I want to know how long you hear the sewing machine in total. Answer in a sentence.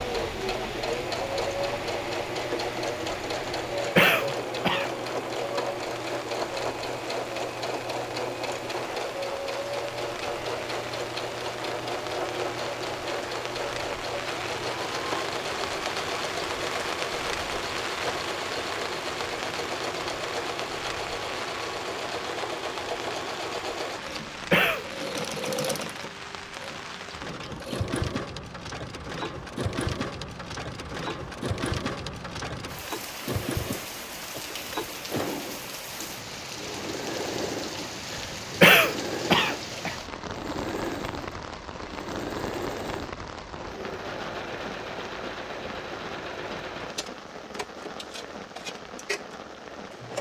The sewing machine can be heard for 50 seconds in total.